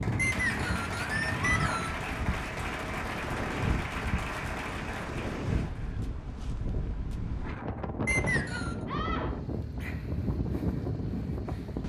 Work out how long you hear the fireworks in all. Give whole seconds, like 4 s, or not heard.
not heard.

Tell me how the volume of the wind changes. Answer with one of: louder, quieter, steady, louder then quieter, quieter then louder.
steady.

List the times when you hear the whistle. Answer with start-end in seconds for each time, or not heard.
0.1-2.0, 8.1-8.8.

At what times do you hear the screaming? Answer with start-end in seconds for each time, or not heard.
1.4-1.8, 8.8-9.3.